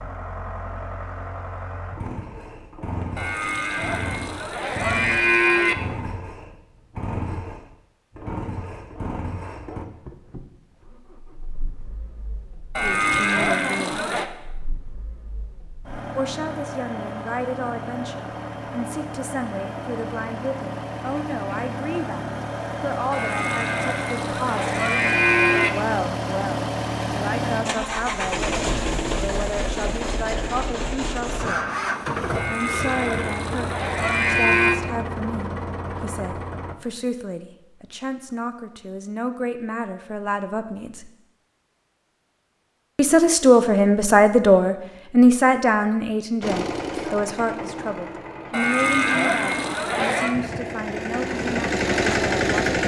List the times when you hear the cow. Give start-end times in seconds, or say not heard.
3.1-5.8, 12.8-14.3, 23.1-25.7, 32.4-34.8, 48.5-50.4.